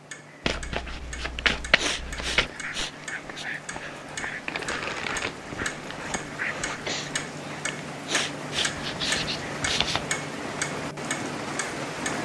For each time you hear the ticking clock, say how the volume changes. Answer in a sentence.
You can hear the ticking clock from 0.0 to 12.1 s, getting louder.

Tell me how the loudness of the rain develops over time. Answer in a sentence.
The loudness of the rain goes up.